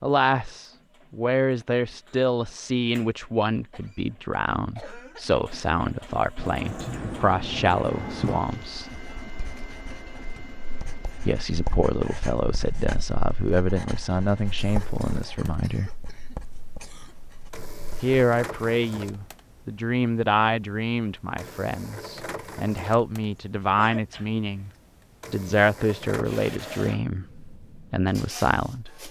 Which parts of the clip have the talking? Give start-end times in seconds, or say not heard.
0.0-8.8, 11.2-15.9, 18.0-24.7, 25.3-29.0.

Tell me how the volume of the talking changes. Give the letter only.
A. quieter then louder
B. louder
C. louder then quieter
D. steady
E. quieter
D.